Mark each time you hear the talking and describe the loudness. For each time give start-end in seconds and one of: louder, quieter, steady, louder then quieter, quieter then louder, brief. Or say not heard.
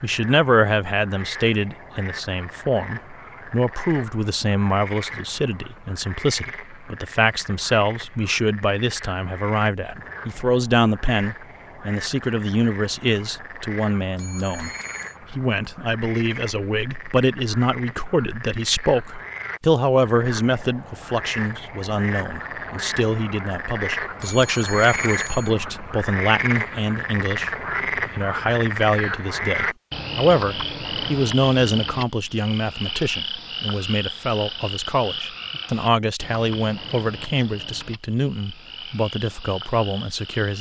0.0-14.7 steady
15.3-40.5 steady.